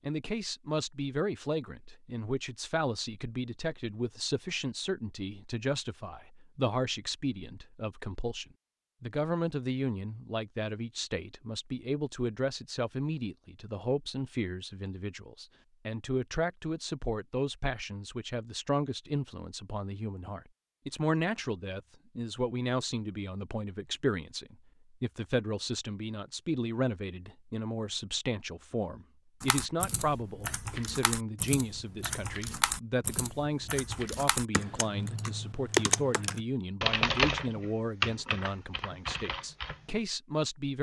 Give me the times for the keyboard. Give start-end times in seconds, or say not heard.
29.4-39.8.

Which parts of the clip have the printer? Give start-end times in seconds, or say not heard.
not heard.